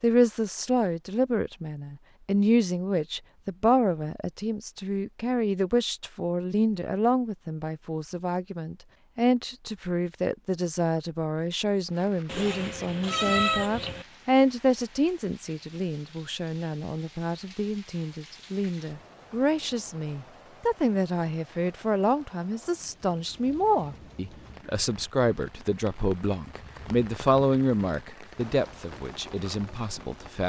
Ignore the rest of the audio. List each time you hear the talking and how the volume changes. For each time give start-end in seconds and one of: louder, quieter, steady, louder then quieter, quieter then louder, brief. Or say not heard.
0.0-30.4 steady.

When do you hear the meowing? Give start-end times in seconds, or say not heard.
12.2-14.1.